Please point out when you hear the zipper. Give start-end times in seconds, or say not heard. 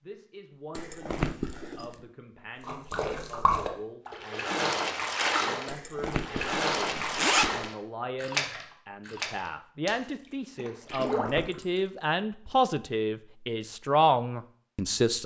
0.8-2.0, 5.7-7.7, 10.8-11.7.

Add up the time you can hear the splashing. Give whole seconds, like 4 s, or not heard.
9 s.